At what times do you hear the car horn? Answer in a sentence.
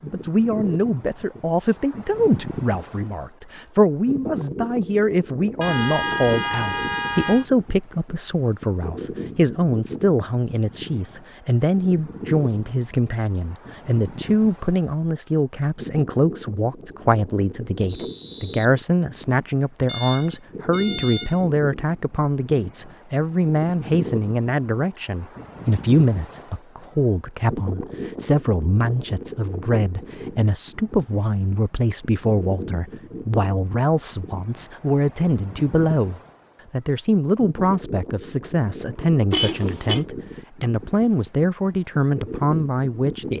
The car horn can be heard from 5.6 to 7.5 s, from 19.9 to 21.4 s and from 39.3 to 40.0 s.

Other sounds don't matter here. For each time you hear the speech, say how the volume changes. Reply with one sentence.
You can hear the speech from 0.0 to 43.3 s, at a steady volume.